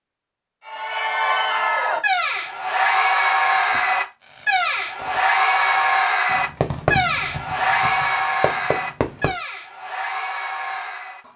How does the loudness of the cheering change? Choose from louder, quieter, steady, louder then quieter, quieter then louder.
quieter.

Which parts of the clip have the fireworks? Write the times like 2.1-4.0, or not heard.
3.6-9.3.